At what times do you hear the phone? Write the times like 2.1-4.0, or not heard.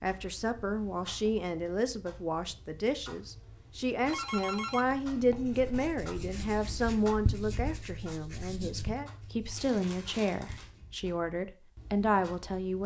4.0-5.0.